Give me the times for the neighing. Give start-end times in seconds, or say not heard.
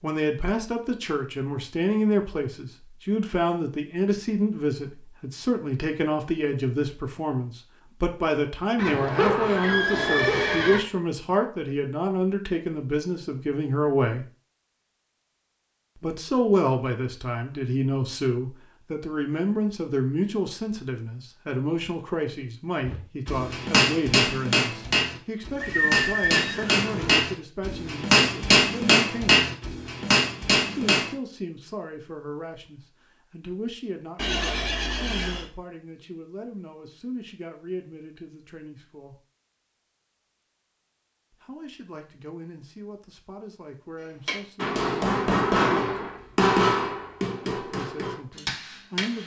8.8-10.8, 25.6-27.2, 34.1-35.5.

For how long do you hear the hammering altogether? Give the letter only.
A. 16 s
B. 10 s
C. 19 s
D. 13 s
D.